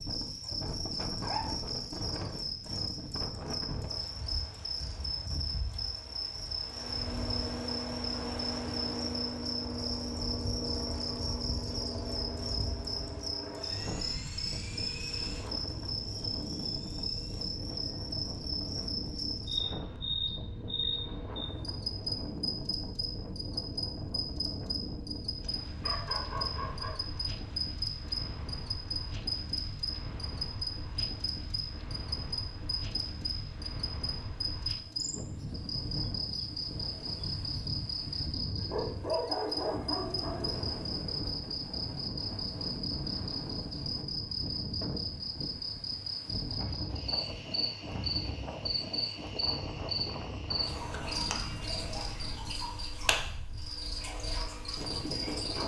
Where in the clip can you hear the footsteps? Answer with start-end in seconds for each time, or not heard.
not heard.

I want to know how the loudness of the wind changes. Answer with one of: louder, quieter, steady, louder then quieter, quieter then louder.
steady.